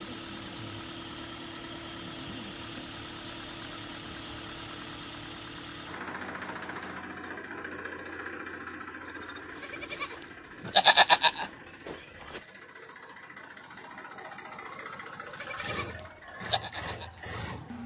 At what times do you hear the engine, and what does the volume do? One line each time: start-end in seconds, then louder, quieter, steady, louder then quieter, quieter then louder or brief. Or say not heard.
0.0-17.8 quieter then louder.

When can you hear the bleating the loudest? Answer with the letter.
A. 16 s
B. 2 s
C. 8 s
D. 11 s
D.